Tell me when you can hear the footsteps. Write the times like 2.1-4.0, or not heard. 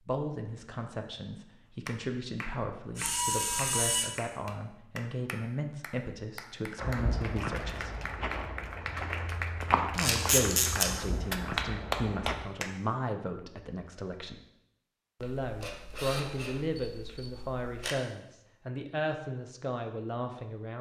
6.8-12.4.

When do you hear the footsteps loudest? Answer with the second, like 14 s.
10 s.